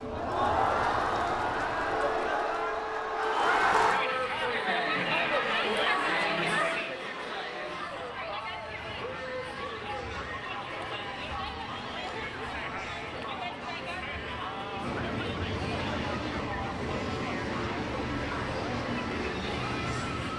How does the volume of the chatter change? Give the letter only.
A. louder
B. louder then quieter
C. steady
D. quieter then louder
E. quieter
E.